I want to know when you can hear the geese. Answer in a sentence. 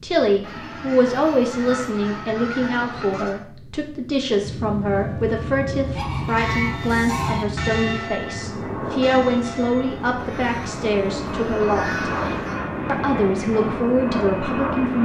You can hear the geese from 0.4 to 3.4 s, from 6.0 to 7.5 s and from 10.2 to 12.6 s.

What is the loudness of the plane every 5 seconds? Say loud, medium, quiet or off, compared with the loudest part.
medium, loud, loud.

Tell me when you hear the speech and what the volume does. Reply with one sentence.
The speech can be heard from 0.0 to 12.1 s, at a steady volume; and briefly from 12.8 to 15.0 s.